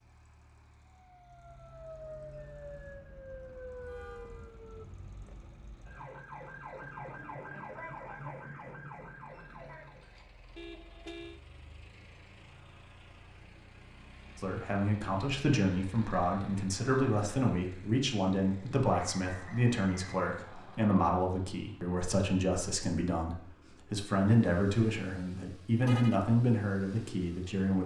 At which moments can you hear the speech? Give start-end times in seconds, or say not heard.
14.3-27.8.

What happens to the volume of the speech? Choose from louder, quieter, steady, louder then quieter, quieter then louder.
steady.